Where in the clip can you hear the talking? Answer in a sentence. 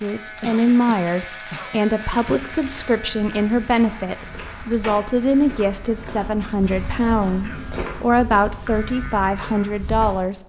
The talking can be heard from 0.0 to 10.4 s.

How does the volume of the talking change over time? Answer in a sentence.
The loudness of the talking stays about the same.